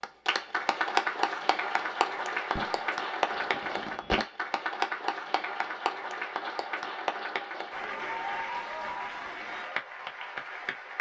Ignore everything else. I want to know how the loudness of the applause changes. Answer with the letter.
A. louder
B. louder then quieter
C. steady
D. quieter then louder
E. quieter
E.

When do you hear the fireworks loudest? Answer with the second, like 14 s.
4 s.